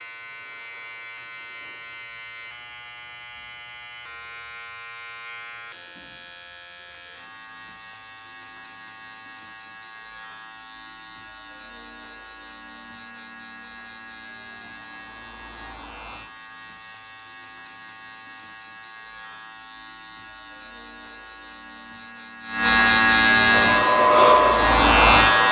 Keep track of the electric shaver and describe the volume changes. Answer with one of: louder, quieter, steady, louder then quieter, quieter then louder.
louder.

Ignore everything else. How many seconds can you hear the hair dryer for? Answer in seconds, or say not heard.
2 s.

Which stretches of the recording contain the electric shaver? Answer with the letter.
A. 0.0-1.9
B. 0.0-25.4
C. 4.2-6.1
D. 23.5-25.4
B.